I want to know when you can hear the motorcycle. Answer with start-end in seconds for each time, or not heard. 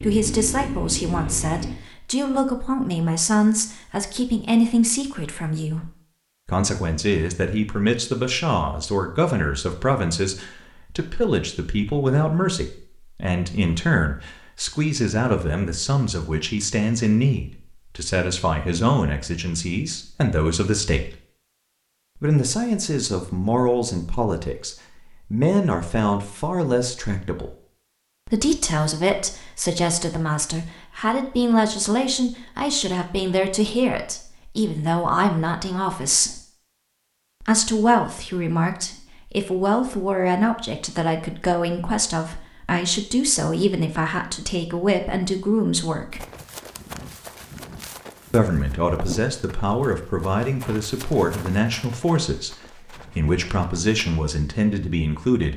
0.0-1.8.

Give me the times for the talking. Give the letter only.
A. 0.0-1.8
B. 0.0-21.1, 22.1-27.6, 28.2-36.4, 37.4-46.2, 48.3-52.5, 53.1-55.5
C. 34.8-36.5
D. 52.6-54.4
B.